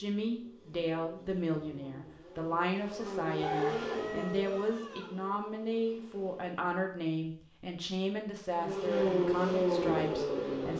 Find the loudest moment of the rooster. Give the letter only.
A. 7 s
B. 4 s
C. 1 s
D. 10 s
B.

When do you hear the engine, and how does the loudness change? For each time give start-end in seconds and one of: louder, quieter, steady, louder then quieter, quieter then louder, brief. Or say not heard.
0.0-6.6 louder then quieter
8.5-10.7 brief.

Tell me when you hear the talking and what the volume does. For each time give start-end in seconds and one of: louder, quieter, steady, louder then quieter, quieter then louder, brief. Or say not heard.
0.0-10.7 steady.